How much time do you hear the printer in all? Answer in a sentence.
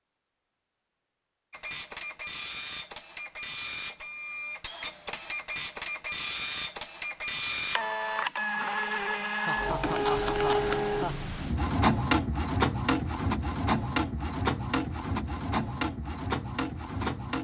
The printer can be heard for 16 seconds in total.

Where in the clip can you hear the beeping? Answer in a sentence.
The beeping can't be heard in this clip.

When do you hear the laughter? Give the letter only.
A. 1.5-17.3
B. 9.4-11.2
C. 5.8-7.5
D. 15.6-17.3
B.